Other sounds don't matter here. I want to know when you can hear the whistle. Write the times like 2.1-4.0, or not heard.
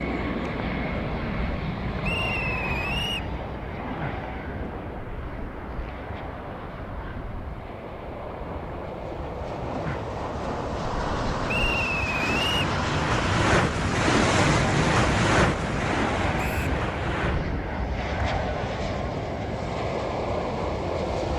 2.0-3.3, 11.4-12.7, 16.4-16.8.